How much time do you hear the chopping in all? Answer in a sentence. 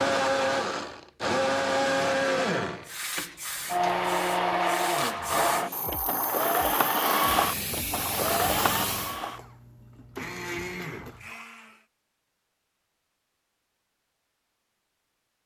You can't hear the chopping here.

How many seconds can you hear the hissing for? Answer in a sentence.
The hissing can be heard for 6 seconds in total.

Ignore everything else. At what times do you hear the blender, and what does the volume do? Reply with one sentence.
The blender can be heard from 0.0 to 11.8 s, getting quieter.